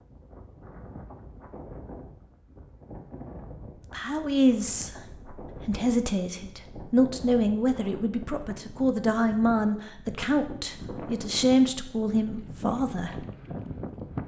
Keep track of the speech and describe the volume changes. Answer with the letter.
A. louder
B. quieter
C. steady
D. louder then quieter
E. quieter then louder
C.